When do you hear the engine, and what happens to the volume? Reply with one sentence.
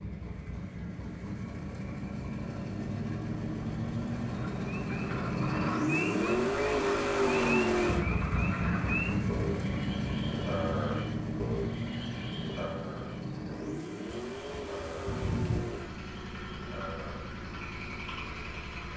The engine can be heard from 0.0 to 18.9 s, getting louder then quieter.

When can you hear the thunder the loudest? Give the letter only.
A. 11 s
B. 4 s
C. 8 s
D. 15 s
D.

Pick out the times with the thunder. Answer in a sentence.
The thunder can be heard from 14.1 to 15.6 s.